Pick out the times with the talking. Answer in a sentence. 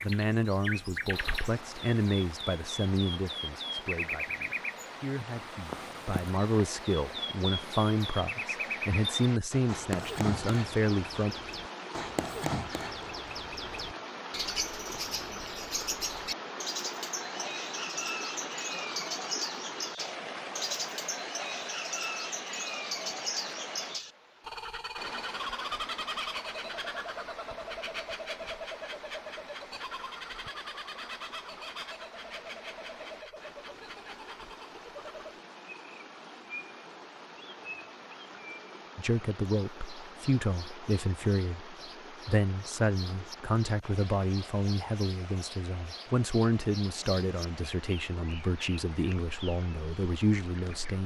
The talking can be heard from 0.0 to 11.3 s and from 39.0 to 51.0 s.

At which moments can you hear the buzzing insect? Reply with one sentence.
You can't hear the buzzing insect here.